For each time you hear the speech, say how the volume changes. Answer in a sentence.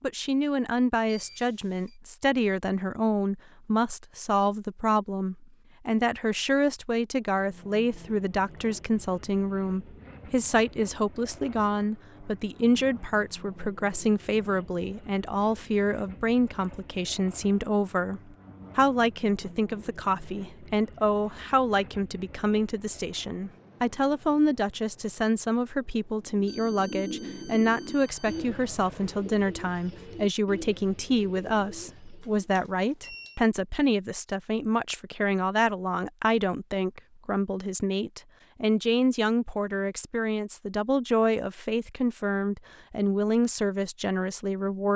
The speech can be heard from 0.0 to 44.9 s, at a steady volume.